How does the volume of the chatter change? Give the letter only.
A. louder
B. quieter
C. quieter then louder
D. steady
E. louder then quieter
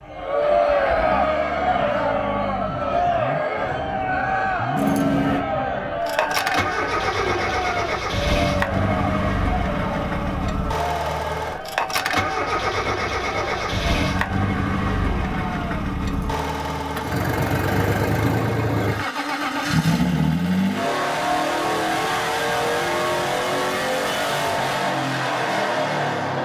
B.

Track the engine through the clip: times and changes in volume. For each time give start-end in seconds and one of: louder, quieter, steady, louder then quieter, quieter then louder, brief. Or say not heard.
0.0-26.4 louder.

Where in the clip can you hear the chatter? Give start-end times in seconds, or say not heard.
0.0-15.8.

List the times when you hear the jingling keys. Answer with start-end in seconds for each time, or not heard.
4.8-5.5, 16.1-17.2.